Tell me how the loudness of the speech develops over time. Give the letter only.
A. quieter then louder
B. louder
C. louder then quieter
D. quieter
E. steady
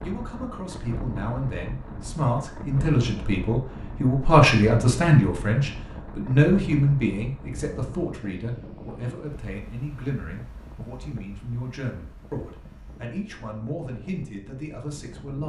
C.